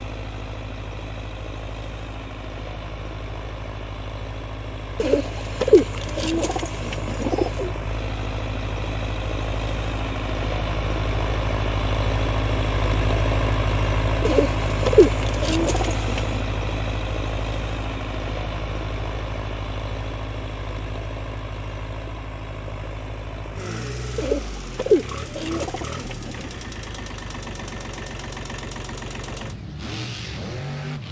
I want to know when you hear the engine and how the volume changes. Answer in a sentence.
The engine can be heard from 0.0 to 31.0 s, getting louder then quieter.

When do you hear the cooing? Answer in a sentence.
The cooing can be heard from 5.0 to 7.7 s, from 14.2 to 16.4 s and from 24.1 to 26.5 s.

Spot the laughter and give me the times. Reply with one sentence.
You can't hear the laughter here.